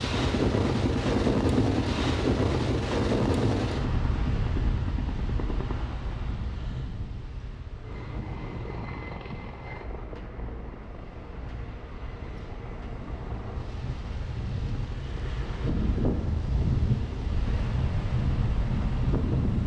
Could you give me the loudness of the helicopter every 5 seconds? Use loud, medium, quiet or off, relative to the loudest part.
loud, medium, medium, quiet.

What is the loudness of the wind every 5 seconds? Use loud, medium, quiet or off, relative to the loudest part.
loud, quiet, quiet, loud.